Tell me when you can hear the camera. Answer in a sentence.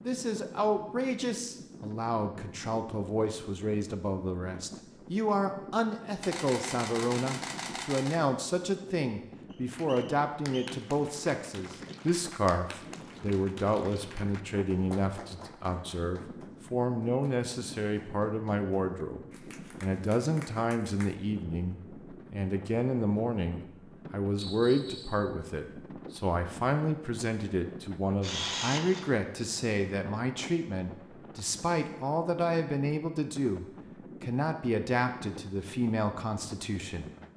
The camera can be heard from 6.2 to 8.2 s and from 28.2 to 29.1 s.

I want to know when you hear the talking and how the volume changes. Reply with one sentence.
You can hear the talking from 0.0 to 37.1 s, at a steady volume.